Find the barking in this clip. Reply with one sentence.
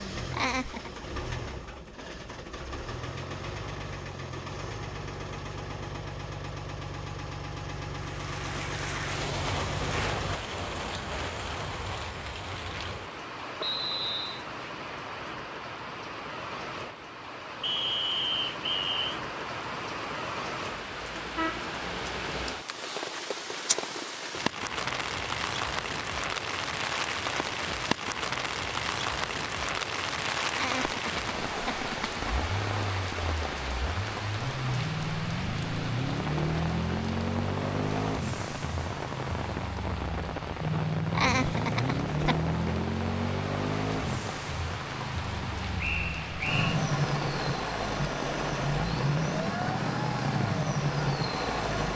You can't hear the barking here.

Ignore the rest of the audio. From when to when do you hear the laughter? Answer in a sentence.
You can hear the laughter from 0.3 to 0.9 s, from 30.5 to 32.4 s and from 41.1 to 42.5 s.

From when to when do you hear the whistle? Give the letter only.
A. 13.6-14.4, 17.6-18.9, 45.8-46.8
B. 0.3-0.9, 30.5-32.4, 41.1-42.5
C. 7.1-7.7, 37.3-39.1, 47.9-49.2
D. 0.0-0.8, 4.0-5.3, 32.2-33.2
A.